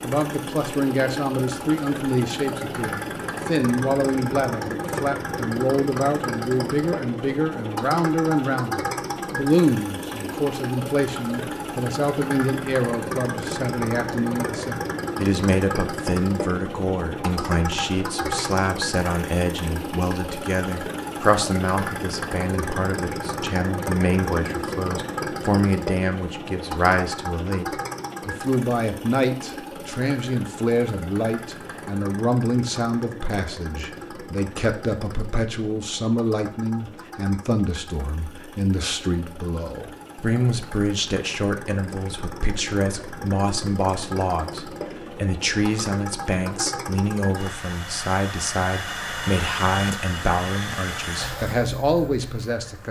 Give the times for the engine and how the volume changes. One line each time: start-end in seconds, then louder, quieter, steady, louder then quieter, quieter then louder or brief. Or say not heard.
0.0-52.8 quieter then louder.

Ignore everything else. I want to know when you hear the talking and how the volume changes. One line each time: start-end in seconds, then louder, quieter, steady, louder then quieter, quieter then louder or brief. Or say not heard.
0.0-52.8 steady.